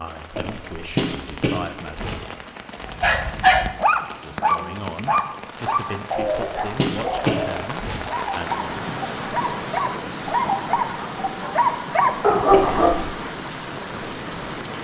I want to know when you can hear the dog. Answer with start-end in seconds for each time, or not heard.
2.9-13.3.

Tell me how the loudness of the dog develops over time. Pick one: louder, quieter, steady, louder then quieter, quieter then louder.
quieter then louder.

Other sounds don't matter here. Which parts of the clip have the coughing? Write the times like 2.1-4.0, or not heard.
0.3-2.1, 6.2-8.0, 12.4-12.9.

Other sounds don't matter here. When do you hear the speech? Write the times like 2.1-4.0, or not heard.
0.0-2.0, 4.0-8.6.